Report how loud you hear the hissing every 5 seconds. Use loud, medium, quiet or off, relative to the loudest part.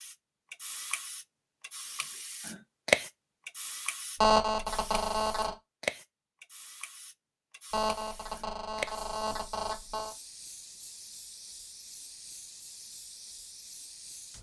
loud, medium, quiet.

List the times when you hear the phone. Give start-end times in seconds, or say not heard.
4.2-5.5, 7.7-10.2.